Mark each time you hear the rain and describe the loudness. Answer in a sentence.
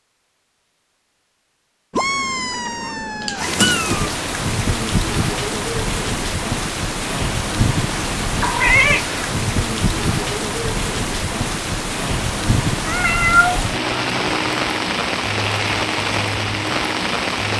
You can hear the rain from 3.4 to 17.5 s, at a steady volume.